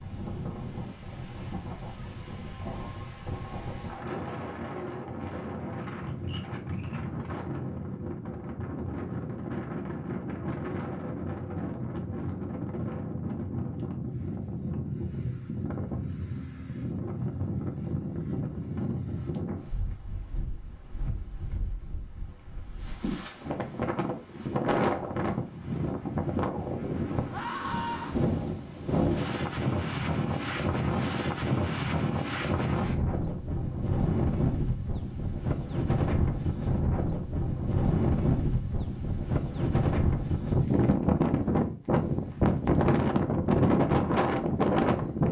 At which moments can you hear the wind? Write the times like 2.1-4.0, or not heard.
0.0-45.2.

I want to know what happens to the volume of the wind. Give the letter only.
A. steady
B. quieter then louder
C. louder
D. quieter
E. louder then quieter
C.